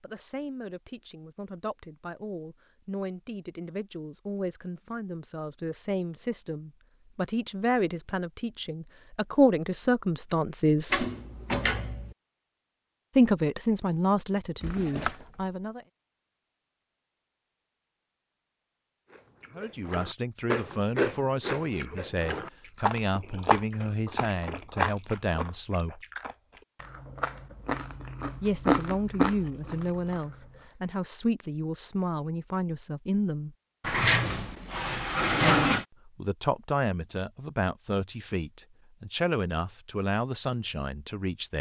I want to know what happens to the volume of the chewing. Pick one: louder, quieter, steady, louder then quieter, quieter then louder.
quieter then louder.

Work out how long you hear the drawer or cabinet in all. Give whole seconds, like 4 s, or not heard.
4 s.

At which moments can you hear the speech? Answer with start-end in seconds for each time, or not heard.
0.0-11.1, 13.2-15.8, 19.6-26.0, 28.4-33.5, 36.0-41.5.